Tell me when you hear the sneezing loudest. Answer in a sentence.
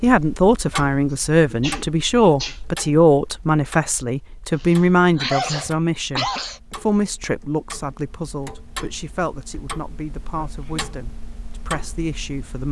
The loudest moment of the sneezing is at 5 seconds.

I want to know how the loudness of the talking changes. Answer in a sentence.
The volume of the talking goes down.